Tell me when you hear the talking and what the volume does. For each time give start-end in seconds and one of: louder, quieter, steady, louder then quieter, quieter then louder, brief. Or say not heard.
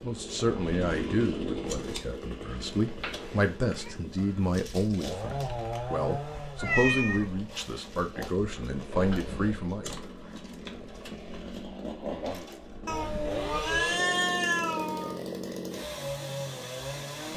0.0-9.9 steady.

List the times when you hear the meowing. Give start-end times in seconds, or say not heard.
2.5-3.9, 6.5-7.3, 12.8-15.2.